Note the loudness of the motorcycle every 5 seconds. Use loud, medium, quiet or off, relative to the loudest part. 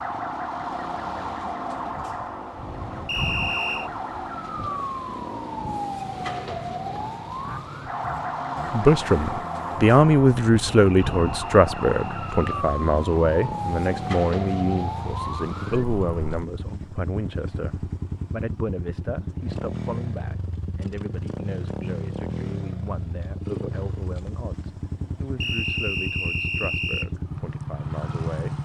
medium, medium, loud, loud, loud, loud.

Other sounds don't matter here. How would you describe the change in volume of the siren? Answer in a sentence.
The loudness of the siren stays about the same.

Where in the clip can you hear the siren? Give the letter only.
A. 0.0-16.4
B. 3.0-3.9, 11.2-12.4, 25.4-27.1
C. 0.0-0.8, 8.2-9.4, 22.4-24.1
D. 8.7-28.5
A.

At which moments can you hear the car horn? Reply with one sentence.
The car horn can't be heard in this clip.